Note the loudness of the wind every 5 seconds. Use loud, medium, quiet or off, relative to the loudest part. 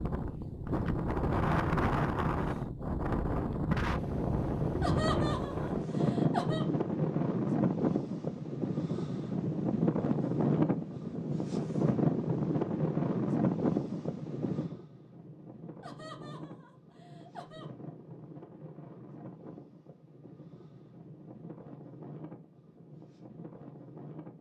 loud, loud, loud, quiet, quiet.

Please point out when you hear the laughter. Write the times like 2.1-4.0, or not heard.
4.8-6.7, 15.8-17.7.